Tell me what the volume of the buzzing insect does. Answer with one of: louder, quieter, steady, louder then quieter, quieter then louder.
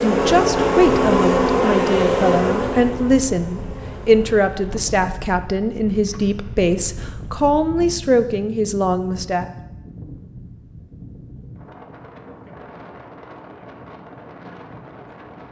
quieter.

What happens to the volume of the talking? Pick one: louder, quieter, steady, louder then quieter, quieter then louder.
steady.